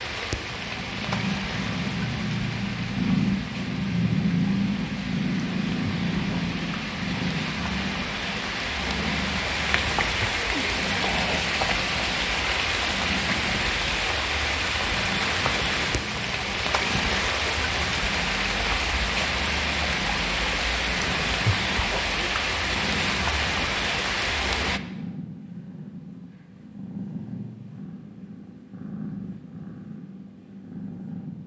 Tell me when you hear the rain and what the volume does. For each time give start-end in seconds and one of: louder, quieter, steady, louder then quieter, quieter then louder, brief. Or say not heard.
0.0-24.8 louder.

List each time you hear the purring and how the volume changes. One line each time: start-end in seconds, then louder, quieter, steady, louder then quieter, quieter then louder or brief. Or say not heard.
0.0-31.4 quieter.